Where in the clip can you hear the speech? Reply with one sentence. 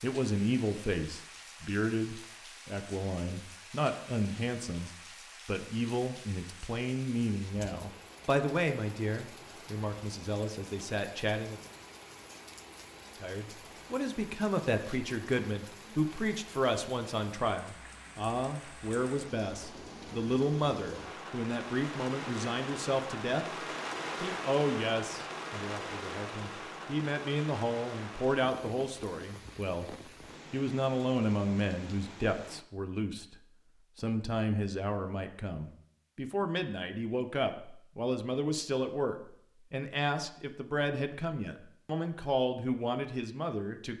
The speech can be heard from 0.0 to 11.6 s, from 13.2 to 23.4 s, from 24.2 to 33.4 s and from 34.0 to 43.9 s.